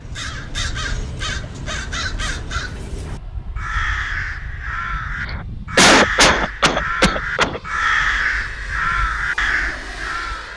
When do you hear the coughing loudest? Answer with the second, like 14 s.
6 s.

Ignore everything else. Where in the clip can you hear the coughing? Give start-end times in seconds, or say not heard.
5.2-7.6.